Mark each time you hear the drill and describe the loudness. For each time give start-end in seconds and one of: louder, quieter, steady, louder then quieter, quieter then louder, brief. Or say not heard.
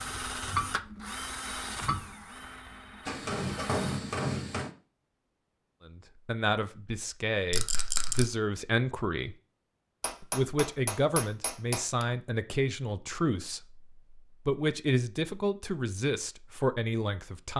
0.0-4.0 quieter.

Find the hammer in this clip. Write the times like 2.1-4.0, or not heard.
3.0-4.8, 10.0-12.1.